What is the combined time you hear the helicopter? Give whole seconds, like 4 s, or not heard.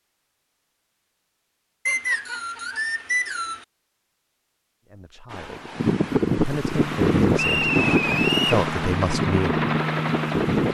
4 s.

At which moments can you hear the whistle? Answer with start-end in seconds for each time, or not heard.
1.9-3.6, 7.3-8.6.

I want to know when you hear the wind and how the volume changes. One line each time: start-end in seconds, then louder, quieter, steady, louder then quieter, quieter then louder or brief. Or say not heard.
5.2-10.6 quieter.